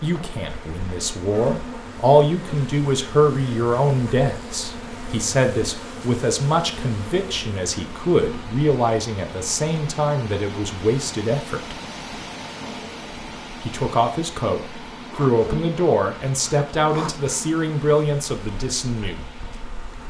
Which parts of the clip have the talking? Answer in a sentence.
The talking can be heard from 0.0 to 11.8 s and from 13.6 to 19.3 s.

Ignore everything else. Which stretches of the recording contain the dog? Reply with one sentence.
You can't hear the dog here.